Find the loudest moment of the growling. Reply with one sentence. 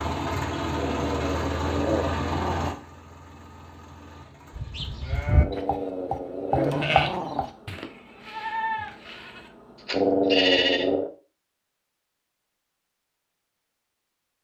The volume of the growling peaks at 10 seconds.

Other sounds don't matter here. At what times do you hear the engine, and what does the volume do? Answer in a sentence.
The engine can be heard from 0.0 to 10.1 s, getting quieter.